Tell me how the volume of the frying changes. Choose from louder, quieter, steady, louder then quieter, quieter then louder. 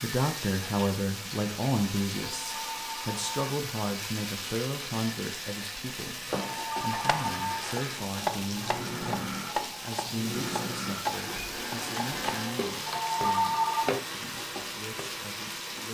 steady.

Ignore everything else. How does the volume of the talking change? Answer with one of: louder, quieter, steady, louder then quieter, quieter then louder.
quieter.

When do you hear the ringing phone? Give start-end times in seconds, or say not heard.
2.2-3.5, 6.5-7.7, 12.8-14.0.